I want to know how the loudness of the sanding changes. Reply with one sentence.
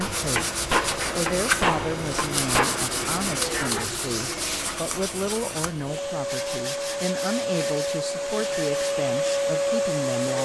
The loudness of the sanding goes down.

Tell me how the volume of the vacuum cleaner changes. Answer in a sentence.
The volume of the vacuum cleaner goes up.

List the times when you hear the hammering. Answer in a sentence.
You can hear the hammering from 0.0 to 2.9 s.